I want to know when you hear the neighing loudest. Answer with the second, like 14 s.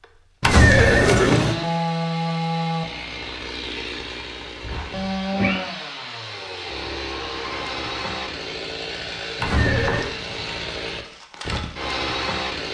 1 s.